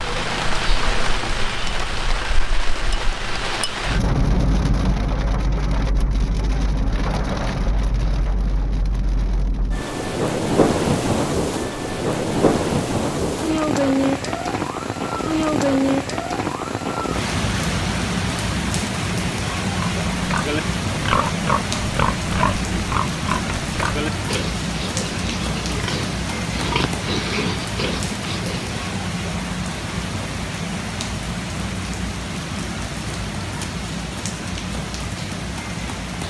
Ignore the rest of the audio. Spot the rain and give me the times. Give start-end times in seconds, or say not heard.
0.0-36.2.